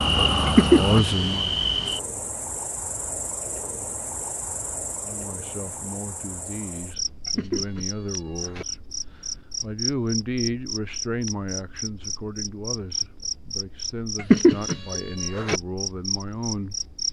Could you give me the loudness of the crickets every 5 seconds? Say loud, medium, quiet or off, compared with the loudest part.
loud, medium, medium, medium.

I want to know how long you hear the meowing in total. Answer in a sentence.
You can hear the meowing for 4 seconds altogether.